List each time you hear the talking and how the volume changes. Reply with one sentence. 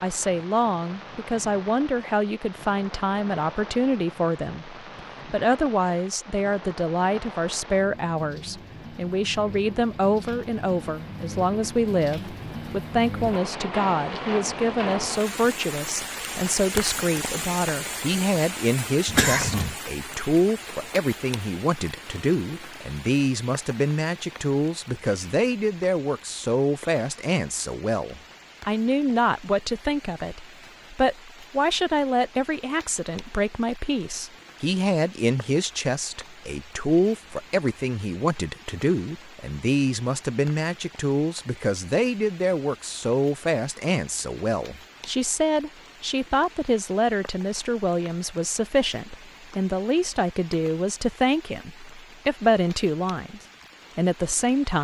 The talking can be heard from 0.0 to 54.7 s, at a steady volume.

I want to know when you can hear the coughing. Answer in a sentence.
The coughing can be heard from 19.1 to 19.8 s.